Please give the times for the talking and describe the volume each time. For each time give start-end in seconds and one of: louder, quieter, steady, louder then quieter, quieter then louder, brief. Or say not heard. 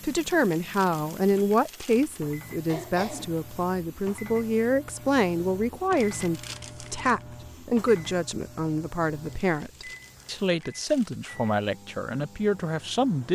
0.0-13.2 steady.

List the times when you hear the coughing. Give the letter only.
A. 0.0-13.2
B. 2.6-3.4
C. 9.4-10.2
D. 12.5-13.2
B.